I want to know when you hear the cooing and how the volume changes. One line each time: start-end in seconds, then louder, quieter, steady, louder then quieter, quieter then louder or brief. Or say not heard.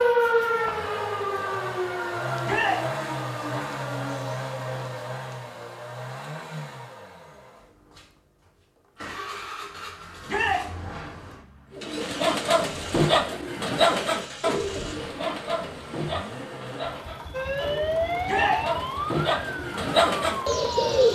11.7-21.0 quieter then louder.